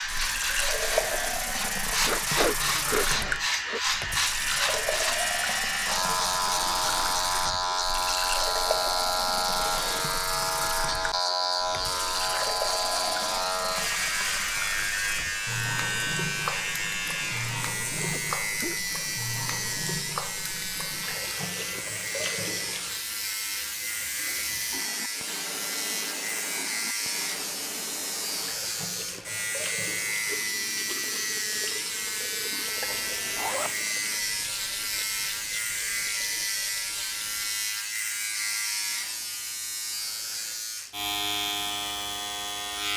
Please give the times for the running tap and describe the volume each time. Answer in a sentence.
You can hear the running tap from 0.0 to 37.9 s, getting quieter.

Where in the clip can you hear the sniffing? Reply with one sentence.
You can hear the sniffing from 2.0 to 3.8 s.